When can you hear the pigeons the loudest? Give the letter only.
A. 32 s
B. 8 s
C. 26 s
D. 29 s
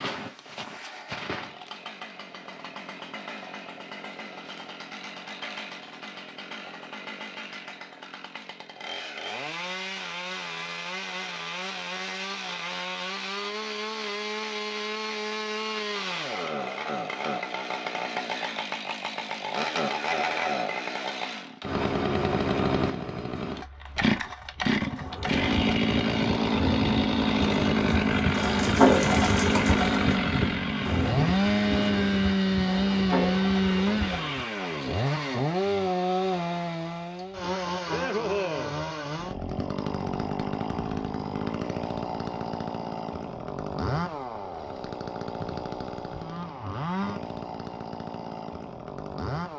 D.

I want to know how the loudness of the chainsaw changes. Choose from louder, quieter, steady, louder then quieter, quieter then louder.
louder then quieter.